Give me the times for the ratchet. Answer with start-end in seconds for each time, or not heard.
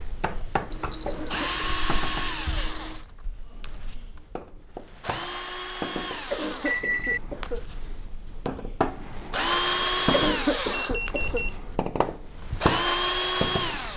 not heard.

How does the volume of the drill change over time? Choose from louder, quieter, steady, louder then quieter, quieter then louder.
quieter then louder.